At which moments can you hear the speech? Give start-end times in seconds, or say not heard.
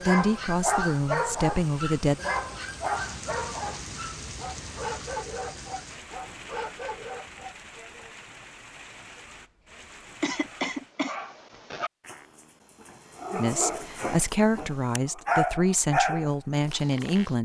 0.1-2.2, 13.3-17.3.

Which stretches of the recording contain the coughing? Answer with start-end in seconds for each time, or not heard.
10.2-11.2.